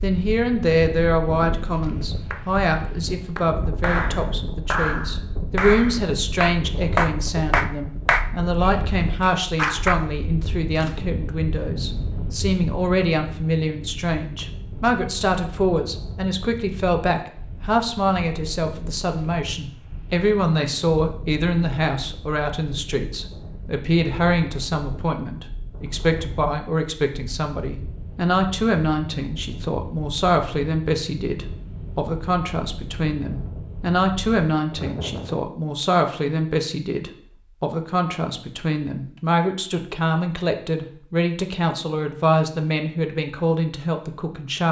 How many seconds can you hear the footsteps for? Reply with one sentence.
You can't hear the footsteps here.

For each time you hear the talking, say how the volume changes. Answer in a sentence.
You can hear the talking from 0.0 to 44.6 s, at a steady volume.